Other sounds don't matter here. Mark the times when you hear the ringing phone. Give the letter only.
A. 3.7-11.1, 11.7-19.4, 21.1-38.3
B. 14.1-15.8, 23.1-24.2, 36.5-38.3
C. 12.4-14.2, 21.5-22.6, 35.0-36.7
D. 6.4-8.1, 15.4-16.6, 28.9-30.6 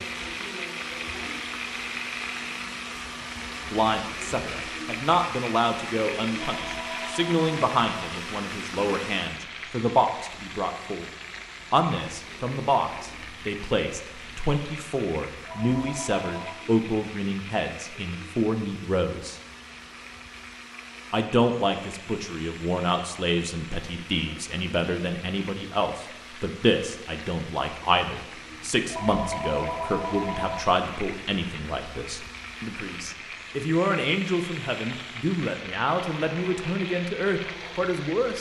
D.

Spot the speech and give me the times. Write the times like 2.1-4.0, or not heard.
3.7-11.1, 11.7-19.4, 21.1-38.3.